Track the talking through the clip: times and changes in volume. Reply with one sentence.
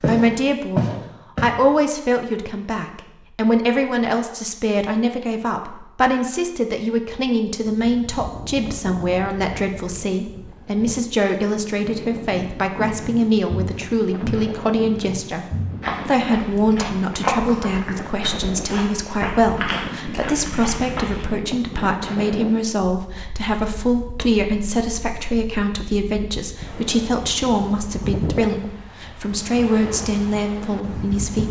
The talking can be heard from 0.1 to 15.4 s, at a steady volume; and from 16.1 to 31.4 s, at a steady volume.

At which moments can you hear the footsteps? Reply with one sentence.
The footsteps can be heard from 0.0 to 1.5 s and from 12.3 to 21.2 s.